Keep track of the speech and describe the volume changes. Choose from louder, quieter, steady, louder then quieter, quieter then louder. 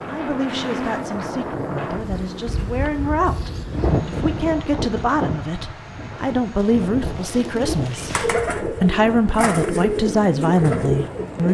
louder.